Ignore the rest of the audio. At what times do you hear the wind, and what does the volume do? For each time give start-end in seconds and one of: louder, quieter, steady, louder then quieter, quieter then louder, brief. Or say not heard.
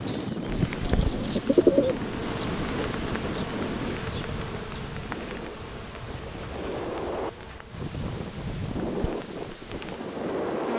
0.0-10.7 quieter then louder.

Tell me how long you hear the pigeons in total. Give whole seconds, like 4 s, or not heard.
4 s.